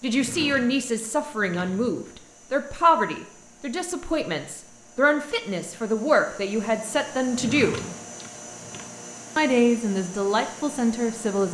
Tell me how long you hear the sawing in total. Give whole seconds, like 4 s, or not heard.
not heard.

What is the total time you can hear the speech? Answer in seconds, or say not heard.
10 s.